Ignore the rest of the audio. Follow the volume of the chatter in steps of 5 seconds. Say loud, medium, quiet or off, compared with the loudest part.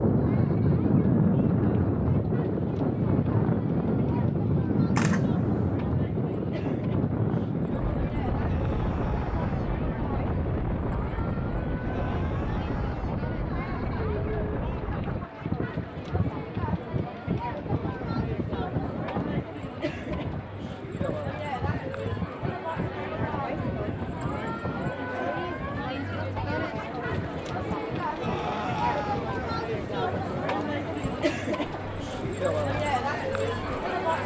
quiet, quiet, medium, medium, medium, loud, loud.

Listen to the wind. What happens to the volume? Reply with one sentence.
The volume of the wind goes down.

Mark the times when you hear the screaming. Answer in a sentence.
You can hear the screaming from 8.4 to 9.8 s, from 11.9 to 13.2 s and from 28.1 to 29.2 s.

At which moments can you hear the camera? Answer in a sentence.
The camera can be heard from 5.0 to 5.7 s.